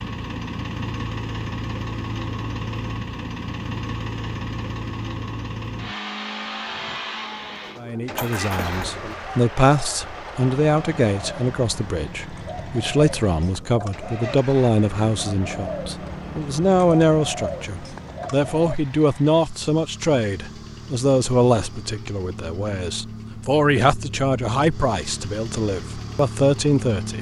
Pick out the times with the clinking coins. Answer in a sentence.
The clinking coins can be heard from 8.2 to 8.8 s.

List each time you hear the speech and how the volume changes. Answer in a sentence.
You can hear the speech from 7.8 to 27.1 s, at a steady volume.